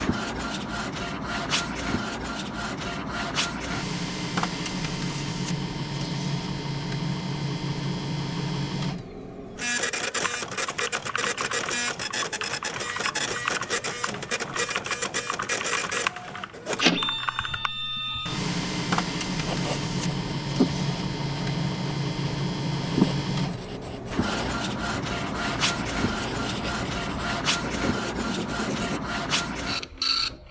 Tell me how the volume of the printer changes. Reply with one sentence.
The loudness of the printer stays about the same.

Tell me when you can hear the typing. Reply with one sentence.
The typing can be heard from 10.2 to 17.7 s.